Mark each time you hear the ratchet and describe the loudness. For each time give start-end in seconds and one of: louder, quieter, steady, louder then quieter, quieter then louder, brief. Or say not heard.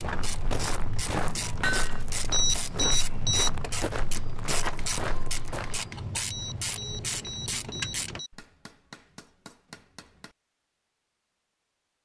0.0-8.2 steady.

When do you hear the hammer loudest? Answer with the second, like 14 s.
2 s.